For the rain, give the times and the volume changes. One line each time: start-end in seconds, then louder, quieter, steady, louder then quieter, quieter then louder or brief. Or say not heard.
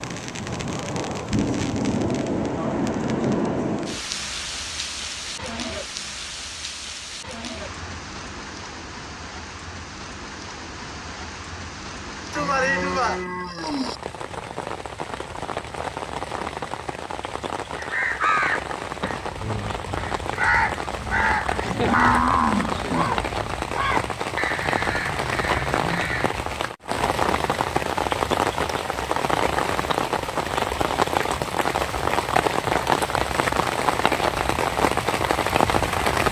0.0-36.2 quieter then louder.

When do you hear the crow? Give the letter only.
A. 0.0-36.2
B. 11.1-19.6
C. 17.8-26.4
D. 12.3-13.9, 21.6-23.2
C.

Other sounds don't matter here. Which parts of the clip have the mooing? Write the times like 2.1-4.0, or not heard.
12.3-13.9, 21.6-23.2.